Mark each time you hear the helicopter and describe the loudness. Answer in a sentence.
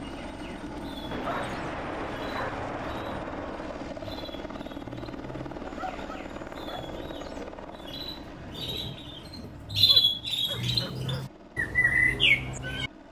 The helicopter can be heard from 0.0 to 13.0 s, getting quieter.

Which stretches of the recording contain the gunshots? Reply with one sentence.
The gunshots can be heard from 1.1 to 4.0 s.